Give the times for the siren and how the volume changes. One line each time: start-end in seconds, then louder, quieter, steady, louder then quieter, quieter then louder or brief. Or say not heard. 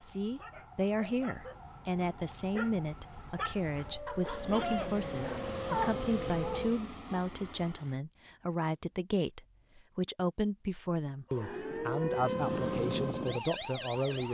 0.0-6.8 louder
11.2-14.2 brief.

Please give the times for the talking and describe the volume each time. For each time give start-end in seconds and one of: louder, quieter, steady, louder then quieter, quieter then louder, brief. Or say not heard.
0.0-14.2 steady.